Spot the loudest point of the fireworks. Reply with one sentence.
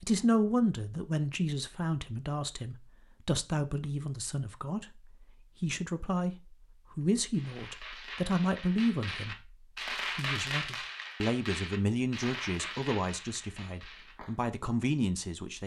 The loudest moment of the fireworks is at 10 seconds.